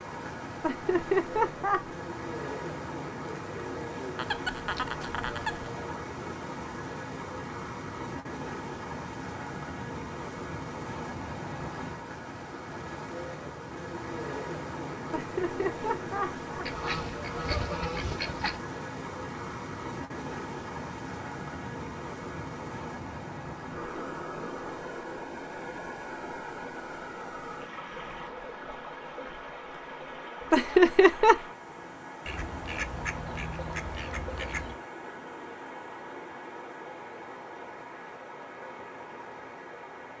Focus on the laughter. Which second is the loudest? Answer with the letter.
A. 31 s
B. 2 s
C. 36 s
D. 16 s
A.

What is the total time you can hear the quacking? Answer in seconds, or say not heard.
6 s.